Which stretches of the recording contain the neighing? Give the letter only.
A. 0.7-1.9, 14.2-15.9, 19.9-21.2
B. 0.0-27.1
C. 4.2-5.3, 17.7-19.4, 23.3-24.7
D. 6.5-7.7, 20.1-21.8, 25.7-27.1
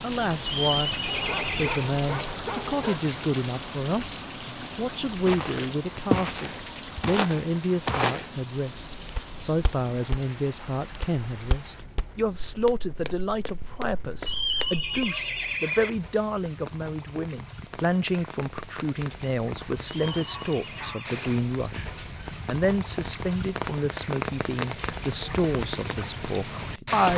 A.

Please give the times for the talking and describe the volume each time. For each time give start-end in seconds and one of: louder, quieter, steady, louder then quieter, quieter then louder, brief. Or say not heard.
0.0-27.1 steady.